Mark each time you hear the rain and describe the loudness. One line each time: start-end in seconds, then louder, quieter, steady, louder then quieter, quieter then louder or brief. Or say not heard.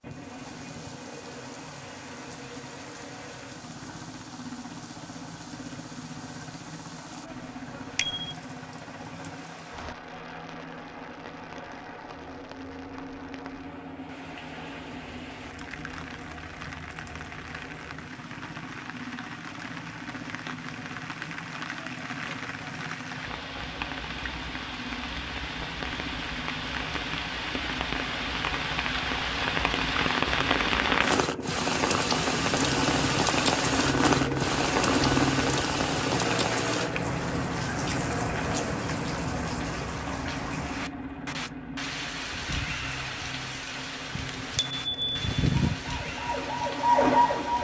0.0-47.6 louder then quieter.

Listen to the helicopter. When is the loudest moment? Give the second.
35 s.